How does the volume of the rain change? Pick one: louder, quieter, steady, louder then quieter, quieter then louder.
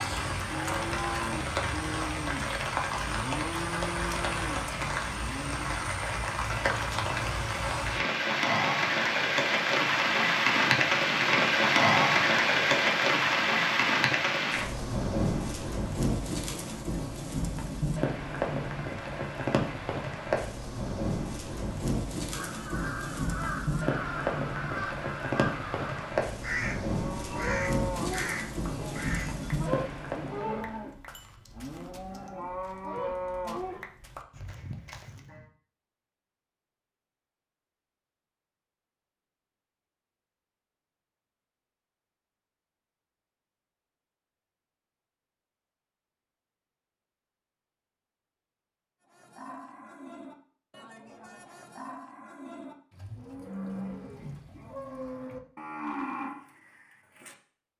louder then quieter.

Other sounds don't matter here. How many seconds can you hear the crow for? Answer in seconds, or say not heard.
7 s.